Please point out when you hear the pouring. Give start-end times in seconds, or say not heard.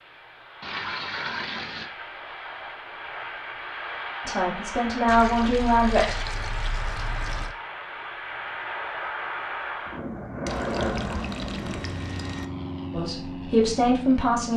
0.6-1.9, 5.0-7.5, 10.4-12.4.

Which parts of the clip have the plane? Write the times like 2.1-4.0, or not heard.
0.0-14.5.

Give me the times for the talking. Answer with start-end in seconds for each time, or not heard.
4.2-6.2, 12.9-14.5.